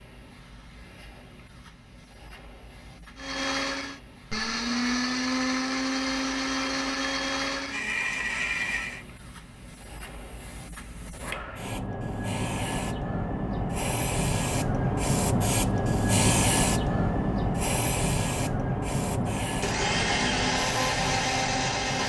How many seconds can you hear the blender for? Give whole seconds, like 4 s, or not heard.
8 s.